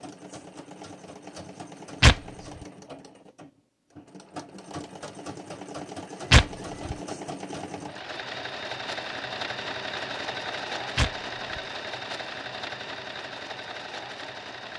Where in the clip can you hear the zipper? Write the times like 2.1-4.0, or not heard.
not heard.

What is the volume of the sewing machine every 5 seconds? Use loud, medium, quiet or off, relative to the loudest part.
medium, loud, loud.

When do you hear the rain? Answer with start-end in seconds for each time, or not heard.
not heard.